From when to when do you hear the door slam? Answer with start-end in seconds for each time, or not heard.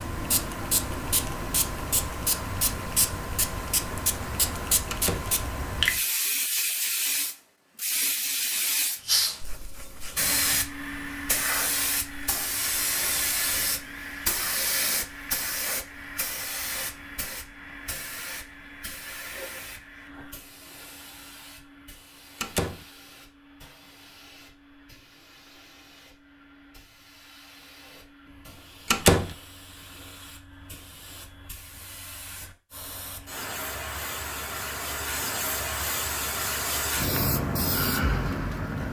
4.9-5.3, 22.4-22.9, 28.9-29.4.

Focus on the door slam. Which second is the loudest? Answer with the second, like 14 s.
29 s.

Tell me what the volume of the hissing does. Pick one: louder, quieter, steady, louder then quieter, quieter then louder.
quieter then louder.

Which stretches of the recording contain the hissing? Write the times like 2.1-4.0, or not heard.
0.0-38.8.